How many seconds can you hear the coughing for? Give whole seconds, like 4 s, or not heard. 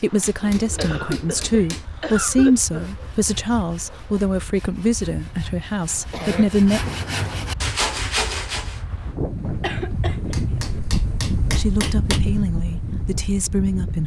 4 s.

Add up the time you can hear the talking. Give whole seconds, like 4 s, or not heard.
9 s.